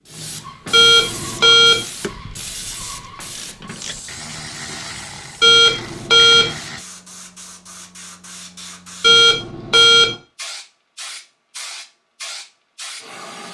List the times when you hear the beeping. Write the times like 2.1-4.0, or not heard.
0.7-1.9, 5.4-6.5, 9.0-10.2.